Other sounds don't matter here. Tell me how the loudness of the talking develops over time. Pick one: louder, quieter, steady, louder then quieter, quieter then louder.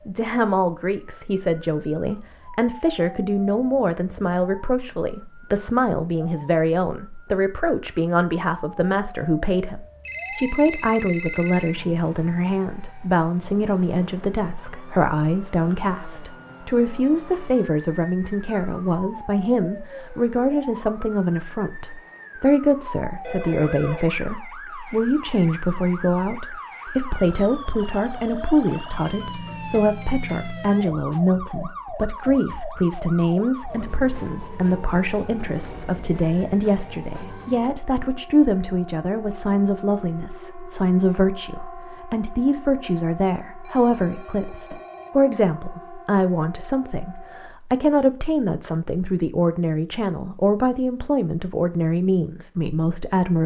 steady.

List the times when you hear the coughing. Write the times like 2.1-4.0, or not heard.
not heard.